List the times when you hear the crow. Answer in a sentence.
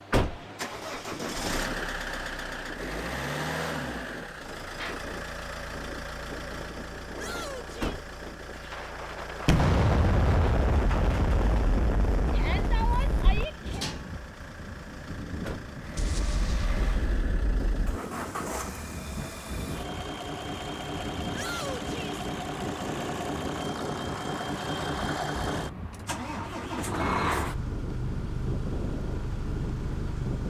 You can't hear the crow here.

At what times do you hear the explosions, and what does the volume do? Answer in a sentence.
You can hear the explosions from 9.4 to 13.4 s, getting quieter; and briefly from 15.9 to 18.0 s.